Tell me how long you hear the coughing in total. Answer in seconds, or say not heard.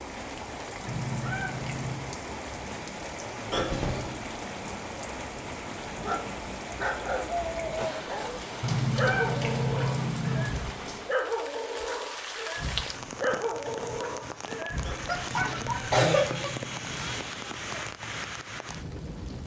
2 s.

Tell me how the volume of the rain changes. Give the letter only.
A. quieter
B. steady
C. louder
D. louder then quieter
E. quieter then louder
B.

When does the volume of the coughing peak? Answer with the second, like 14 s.
16 s.